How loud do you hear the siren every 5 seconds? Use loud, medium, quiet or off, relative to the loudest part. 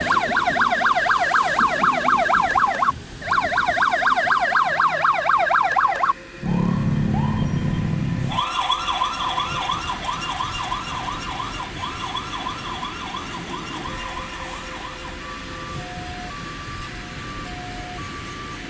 loud, loud, quiet, quiet.